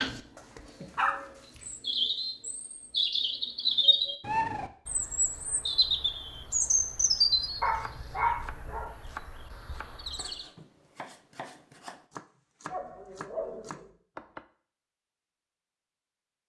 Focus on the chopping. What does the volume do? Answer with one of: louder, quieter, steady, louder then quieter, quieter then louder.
quieter then louder.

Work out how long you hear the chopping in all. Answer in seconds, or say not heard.
7 s.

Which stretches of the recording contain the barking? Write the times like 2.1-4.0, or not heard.
0.3-1.6, 7.6-8.9, 12.7-13.9.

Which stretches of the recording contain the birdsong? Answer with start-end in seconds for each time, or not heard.
0.0-10.4.